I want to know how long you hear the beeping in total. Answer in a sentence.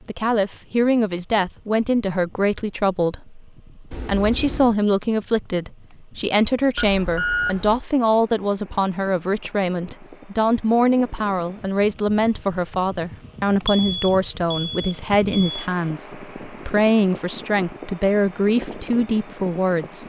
The beeping can be heard for 4 seconds in total.